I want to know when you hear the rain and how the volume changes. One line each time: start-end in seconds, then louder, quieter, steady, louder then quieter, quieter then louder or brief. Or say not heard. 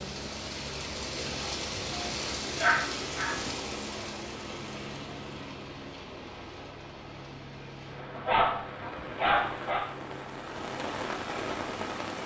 0.0-12.2 quieter then louder.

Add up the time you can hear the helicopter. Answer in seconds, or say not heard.
12 s.